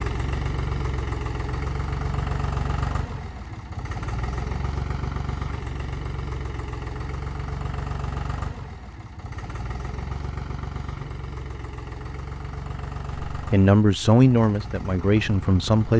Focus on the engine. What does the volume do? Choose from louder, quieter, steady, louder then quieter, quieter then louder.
quieter.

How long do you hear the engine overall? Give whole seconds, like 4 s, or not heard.
16 s.